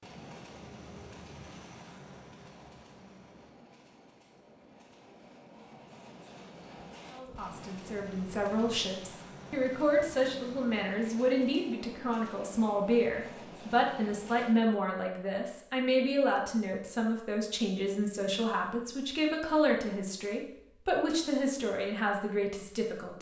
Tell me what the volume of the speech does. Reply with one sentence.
The loudness of the speech stays about the same.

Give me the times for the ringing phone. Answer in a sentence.
You can't hear the ringing phone here.